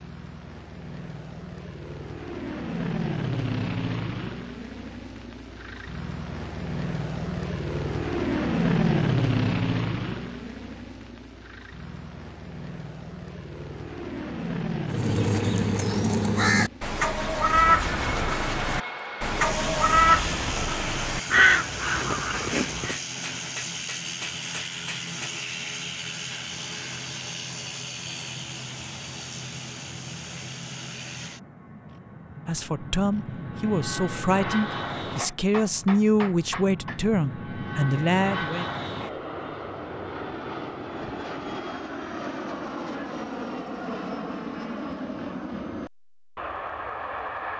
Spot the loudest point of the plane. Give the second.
9 s.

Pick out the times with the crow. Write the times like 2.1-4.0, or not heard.
14.9-22.9.